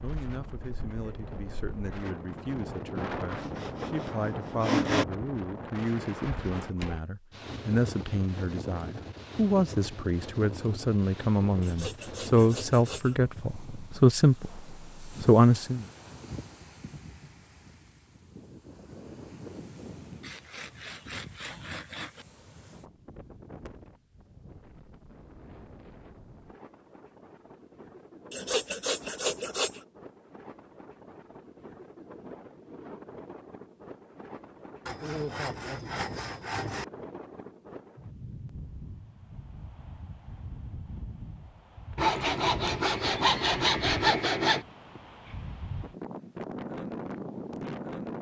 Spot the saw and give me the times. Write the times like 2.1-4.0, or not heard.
3.4-5.0, 11.6-13.2, 20.2-22.2, 28.3-29.9, 34.9-36.9, 42.0-44.6.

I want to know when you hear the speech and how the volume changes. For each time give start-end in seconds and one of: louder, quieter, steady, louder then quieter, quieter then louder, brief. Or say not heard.
0.0-15.8 louder.